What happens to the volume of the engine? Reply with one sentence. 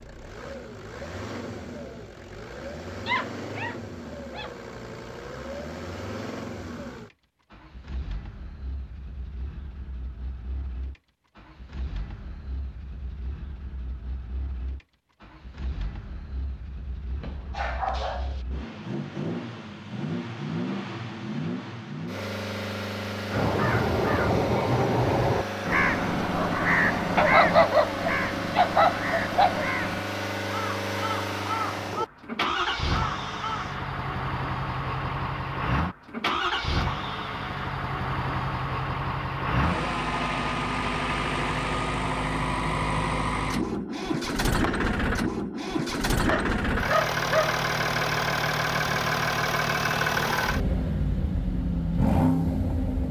The volume of the engine goes up.